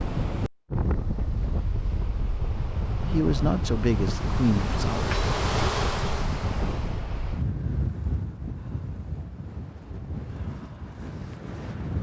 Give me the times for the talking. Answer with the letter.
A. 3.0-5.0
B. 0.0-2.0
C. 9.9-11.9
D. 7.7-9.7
A.